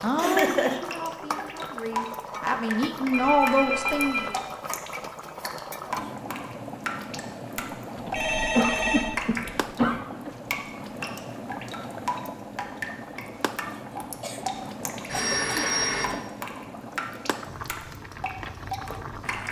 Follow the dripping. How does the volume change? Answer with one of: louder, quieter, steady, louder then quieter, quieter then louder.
steady.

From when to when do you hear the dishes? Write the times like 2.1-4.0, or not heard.
not heard.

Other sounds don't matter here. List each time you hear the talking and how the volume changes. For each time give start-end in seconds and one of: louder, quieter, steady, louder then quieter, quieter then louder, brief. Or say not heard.
0.0-4.3 quieter then louder.